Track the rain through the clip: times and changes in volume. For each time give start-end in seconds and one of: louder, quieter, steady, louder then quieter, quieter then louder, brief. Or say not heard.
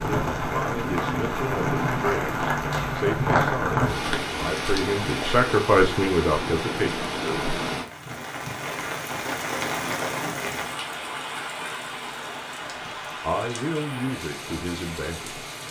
0.0-15.6 quieter.